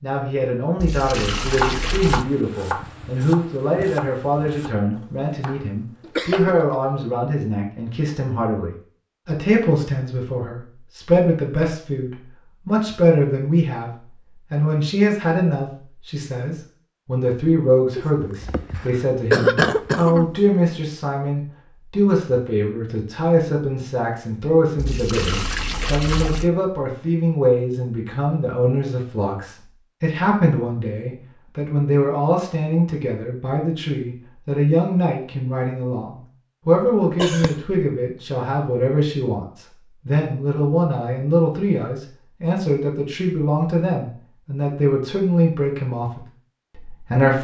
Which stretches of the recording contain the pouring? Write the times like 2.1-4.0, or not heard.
0.8-2.2, 24.8-26.5.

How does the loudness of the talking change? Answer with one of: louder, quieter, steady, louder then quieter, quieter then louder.
steady.